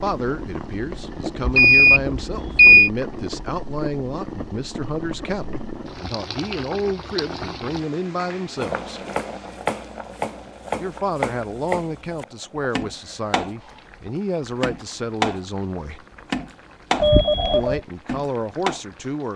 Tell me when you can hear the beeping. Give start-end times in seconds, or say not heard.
1.4-2.9, 17.0-17.8.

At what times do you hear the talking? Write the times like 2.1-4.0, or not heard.
0.0-9.0, 10.8-16.1, 17.5-19.3.